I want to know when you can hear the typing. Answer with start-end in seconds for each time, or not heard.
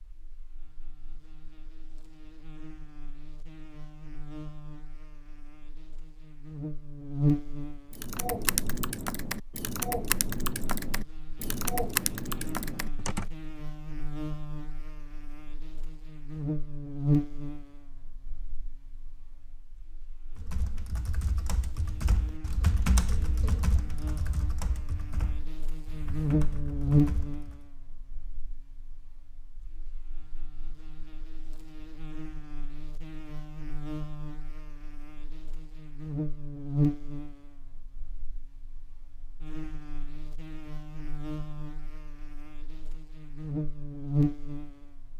7.9-13.3, 20.4-27.6.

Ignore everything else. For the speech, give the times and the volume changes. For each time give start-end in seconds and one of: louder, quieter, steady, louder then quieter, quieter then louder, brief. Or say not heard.
not heard.